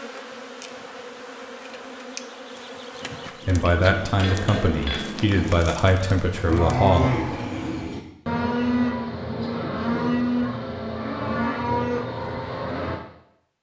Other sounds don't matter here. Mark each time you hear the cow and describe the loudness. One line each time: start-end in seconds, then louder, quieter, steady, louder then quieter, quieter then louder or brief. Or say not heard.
5.2-13.0 steady.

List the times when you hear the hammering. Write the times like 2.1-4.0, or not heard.
3.5-5.3.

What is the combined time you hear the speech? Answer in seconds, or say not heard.
4 s.